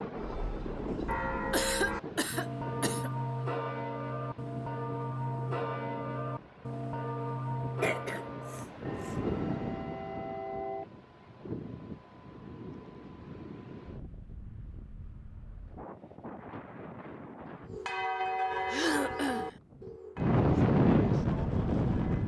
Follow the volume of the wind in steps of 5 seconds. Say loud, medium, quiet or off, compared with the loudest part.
quiet, quiet, quiet, quiet, loud.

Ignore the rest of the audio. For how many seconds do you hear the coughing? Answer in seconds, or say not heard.
4 s.